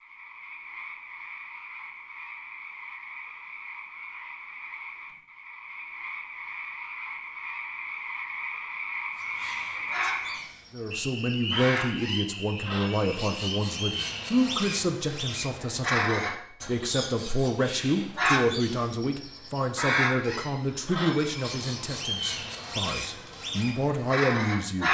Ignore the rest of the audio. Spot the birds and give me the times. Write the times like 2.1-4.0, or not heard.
9.2-24.8.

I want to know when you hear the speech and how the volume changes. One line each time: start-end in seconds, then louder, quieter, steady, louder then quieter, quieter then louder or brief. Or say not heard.
10.7-24.8 steady.